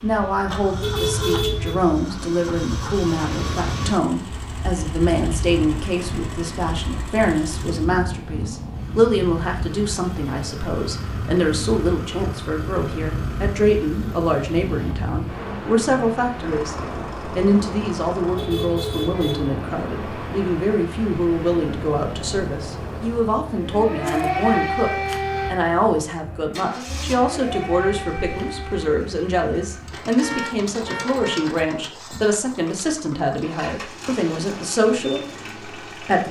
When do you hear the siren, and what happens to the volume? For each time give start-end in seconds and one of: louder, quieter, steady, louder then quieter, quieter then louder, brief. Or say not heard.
23.4-28.9 quieter then louder.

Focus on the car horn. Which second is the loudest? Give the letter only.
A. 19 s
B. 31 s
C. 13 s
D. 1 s
D.